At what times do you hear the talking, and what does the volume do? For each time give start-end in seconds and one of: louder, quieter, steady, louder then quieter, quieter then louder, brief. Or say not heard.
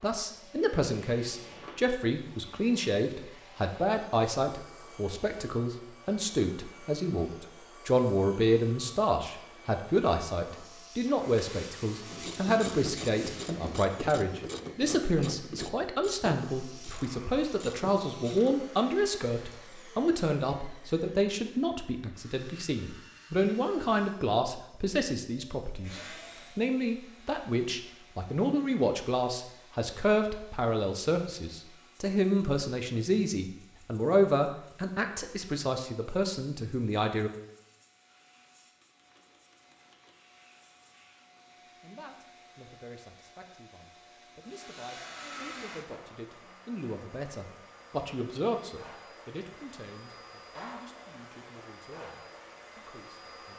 0.0-37.3 steady
41.8-53.5 louder then quieter.